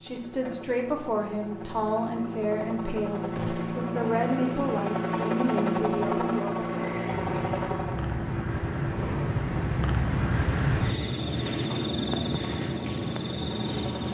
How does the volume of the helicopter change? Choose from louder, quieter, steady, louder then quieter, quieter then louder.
louder then quieter.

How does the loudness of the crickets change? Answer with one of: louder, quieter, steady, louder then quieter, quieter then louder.
louder.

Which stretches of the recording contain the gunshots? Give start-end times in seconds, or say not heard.
3.4-3.9.